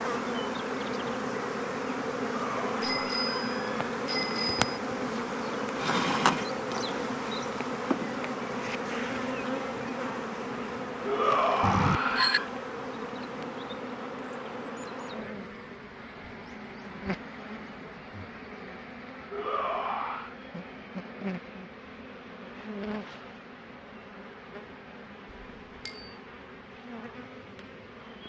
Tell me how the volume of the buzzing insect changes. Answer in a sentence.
The volume of the buzzing insect goes down.